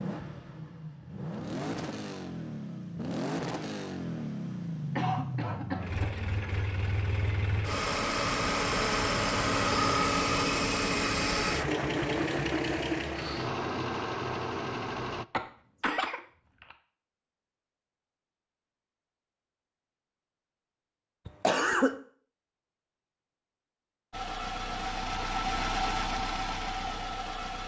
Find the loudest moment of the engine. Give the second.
10 s.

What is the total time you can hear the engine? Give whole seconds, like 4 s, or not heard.
19 s.